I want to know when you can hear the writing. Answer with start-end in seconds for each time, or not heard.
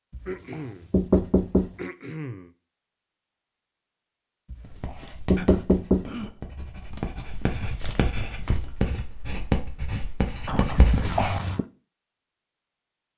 4.7-11.2.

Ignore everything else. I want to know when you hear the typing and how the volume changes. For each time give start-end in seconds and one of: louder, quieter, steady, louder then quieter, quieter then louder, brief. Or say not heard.
not heard.